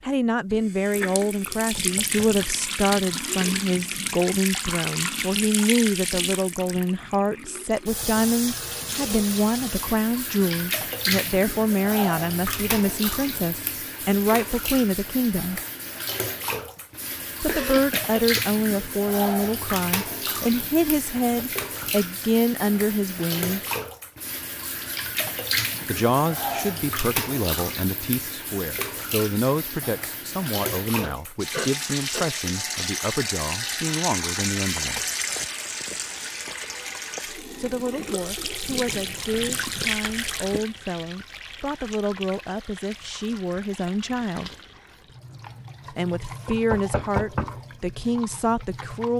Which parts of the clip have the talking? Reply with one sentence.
You can hear the talking from 0.1 to 15.6 s, from 17.4 to 23.6 s, from 25.9 to 35.0 s, from 37.5 to 44.5 s and from 45.9 to 49.1 s.